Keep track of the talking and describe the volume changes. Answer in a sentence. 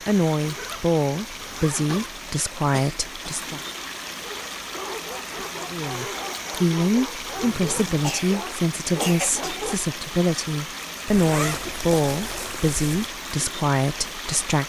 The loudness of the talking stays about the same.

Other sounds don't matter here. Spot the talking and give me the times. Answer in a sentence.
The talking can be heard from 0.1 to 3.6 s and from 5.7 to 14.6 s.